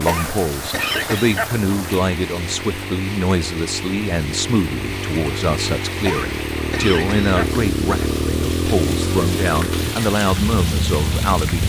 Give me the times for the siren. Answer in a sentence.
You can't hear the siren here.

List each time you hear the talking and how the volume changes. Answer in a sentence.
The talking can be heard from 0.0 to 11.6 s, at a steady volume.